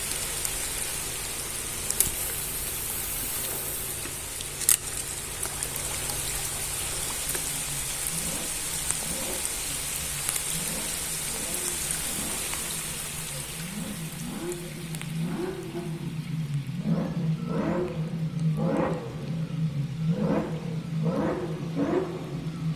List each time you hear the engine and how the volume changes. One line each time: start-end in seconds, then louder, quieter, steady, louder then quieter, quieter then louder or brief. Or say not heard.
0.0-22.7 louder.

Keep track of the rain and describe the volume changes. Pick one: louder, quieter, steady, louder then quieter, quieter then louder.
quieter.